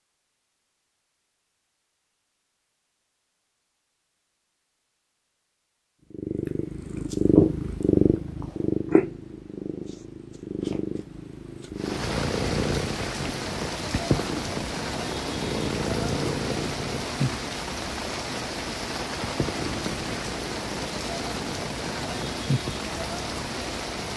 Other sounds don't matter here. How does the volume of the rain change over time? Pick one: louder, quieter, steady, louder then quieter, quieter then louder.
steady.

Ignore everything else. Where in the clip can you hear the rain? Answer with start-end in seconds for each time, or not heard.
11.8-24.1.